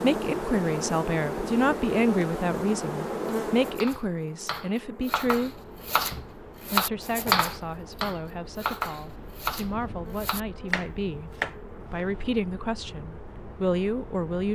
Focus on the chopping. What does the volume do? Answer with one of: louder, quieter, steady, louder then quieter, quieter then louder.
louder then quieter.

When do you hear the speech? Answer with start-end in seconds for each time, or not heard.
0.0-5.6, 6.7-14.4.